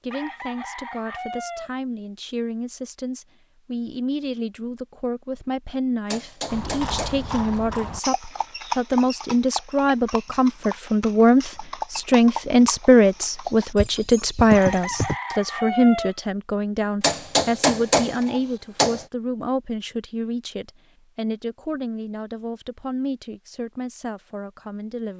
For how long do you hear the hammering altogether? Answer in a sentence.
The hammering can be heard for 3 seconds in total.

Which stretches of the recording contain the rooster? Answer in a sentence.
The rooster can be heard from 0.1 to 1.7 s and from 14.5 to 16.1 s.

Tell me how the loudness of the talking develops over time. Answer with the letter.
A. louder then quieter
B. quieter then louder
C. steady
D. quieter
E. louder
A.